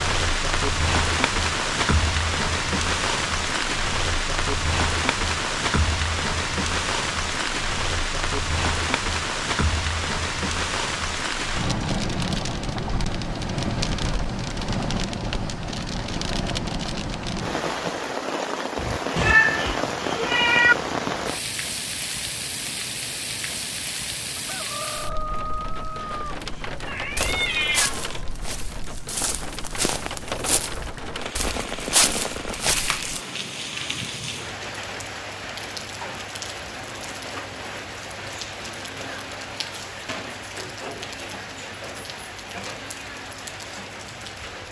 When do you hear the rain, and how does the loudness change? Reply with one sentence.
You can hear the rain from 0.0 to 44.6 s, getting quieter.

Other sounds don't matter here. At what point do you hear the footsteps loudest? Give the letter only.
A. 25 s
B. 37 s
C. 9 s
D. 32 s
D.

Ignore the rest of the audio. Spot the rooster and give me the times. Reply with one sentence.
You can hear the rooster from 24.4 to 26.4 s.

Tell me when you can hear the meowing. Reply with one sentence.
The meowing can be heard from 18.8 to 20.8 s and from 26.0 to 28.3 s.